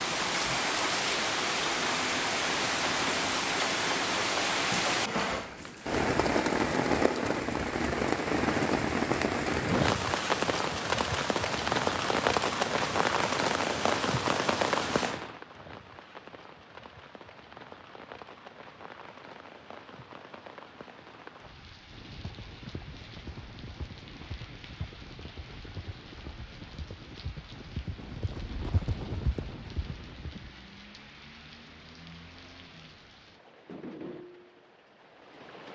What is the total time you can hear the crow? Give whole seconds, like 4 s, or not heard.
not heard.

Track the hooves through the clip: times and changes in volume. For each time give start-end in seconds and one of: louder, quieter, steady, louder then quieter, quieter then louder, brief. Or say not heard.
21.9-30.5 louder.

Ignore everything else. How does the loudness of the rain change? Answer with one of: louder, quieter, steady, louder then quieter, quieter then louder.
quieter.